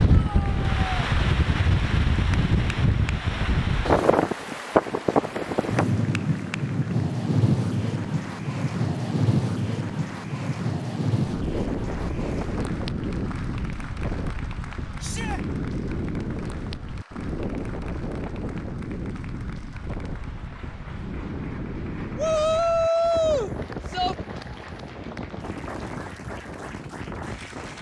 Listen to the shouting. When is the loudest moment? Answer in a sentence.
The loudest moment of the shouting is at 23 seconds.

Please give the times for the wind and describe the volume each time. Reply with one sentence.
You can hear the wind from 0.0 to 27.7 s, getting quieter.